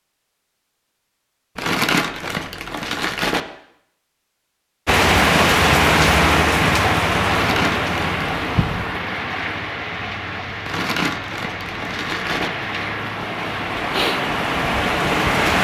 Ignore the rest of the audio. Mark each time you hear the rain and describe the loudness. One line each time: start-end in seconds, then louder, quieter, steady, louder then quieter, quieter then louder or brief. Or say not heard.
4.8-15.5 quieter then louder.